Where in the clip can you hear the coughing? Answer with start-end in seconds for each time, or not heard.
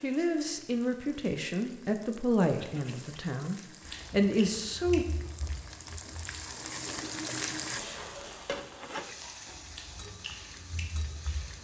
2.5-3.2, 6.8-7.4.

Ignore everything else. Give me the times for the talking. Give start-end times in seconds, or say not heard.
0.0-5.0.